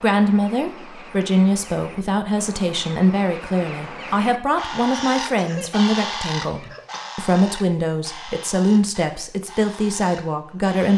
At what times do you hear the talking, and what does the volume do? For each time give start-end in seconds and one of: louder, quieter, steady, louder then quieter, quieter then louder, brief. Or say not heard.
0.0-10.9 steady.